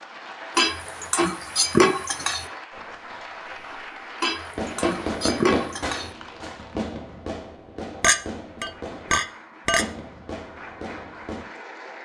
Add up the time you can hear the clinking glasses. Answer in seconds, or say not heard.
6 s.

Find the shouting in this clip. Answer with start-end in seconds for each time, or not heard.
not heard.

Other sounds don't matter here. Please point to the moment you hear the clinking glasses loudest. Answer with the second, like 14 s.
2 s.